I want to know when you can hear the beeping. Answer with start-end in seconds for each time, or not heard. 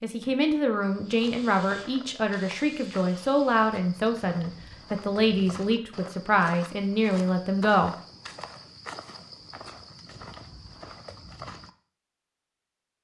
not heard.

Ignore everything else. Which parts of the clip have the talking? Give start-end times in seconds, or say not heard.
0.0-7.9.